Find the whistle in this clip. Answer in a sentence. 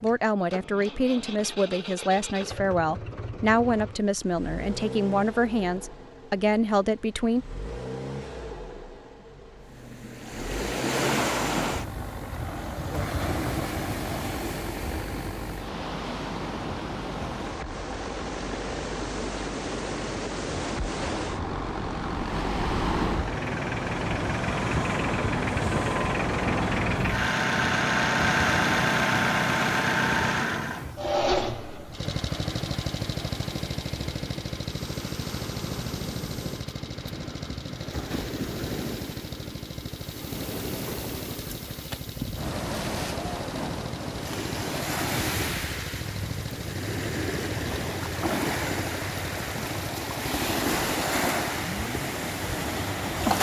The whistle can't be heard in this clip.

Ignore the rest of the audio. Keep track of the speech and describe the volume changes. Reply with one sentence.
The loudness of the speech stays about the same.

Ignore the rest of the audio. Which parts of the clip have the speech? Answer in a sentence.
You can hear the speech from 0.0 to 7.5 s.